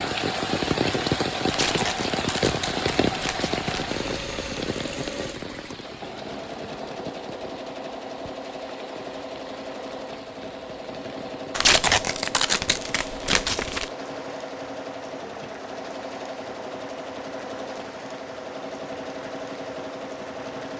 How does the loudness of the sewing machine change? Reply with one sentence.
The loudness of the sewing machine stays about the same.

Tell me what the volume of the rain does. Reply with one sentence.
The loudness of the rain goes down.